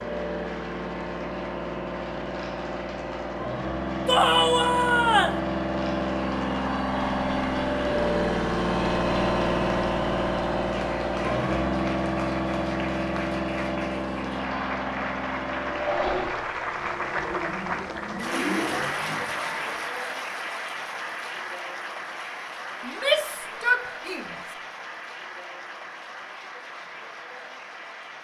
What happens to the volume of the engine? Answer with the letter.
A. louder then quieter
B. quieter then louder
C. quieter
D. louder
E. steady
A.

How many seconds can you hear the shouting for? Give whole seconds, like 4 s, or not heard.
3 s.